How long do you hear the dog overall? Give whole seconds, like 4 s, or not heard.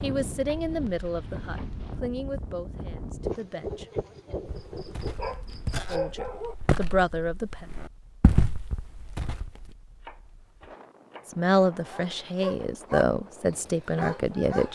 4 s.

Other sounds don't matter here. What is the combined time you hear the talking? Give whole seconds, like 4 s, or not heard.
9 s.